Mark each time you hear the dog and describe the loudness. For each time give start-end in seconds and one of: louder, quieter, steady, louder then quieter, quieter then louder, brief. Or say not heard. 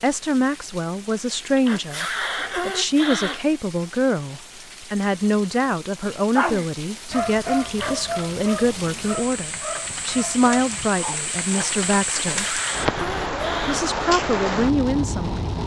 6.0-11.8 quieter.